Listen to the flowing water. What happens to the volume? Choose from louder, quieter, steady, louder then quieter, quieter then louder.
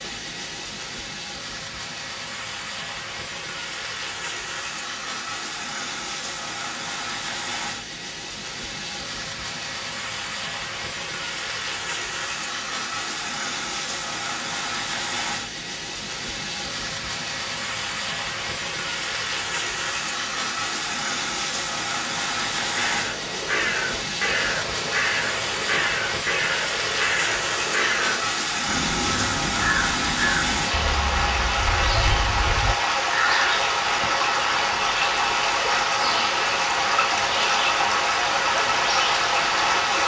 louder.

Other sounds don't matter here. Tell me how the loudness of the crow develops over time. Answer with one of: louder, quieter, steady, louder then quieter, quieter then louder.
quieter.